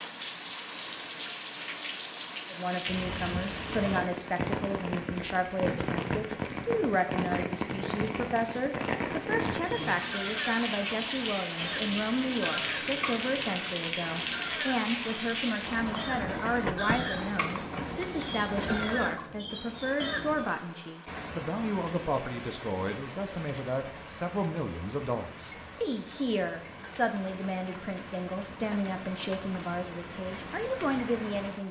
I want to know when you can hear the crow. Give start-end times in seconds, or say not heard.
9.8-20.6.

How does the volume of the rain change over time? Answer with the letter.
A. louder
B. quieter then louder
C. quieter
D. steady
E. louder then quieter
C.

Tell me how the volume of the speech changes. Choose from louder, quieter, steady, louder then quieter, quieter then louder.
steady.